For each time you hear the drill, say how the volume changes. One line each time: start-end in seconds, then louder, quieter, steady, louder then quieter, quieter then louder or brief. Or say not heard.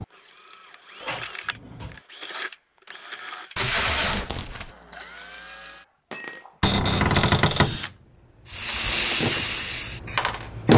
0.0-10.7 louder.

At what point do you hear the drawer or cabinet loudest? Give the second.
7 s.